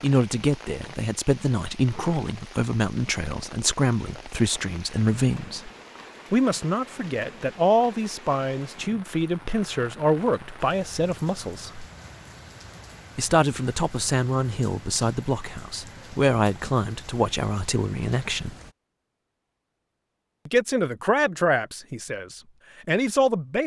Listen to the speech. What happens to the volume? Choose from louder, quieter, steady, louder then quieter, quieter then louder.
steady.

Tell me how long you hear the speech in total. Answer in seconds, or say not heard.
20 s.